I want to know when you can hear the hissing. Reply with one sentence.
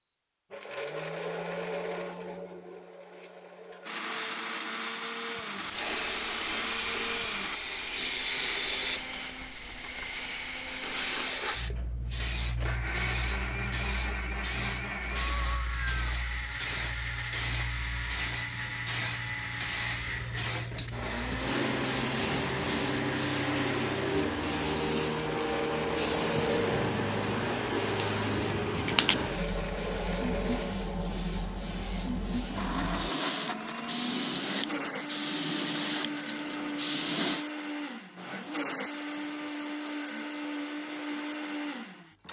You can hear the hissing from 5.5 to 37.5 s.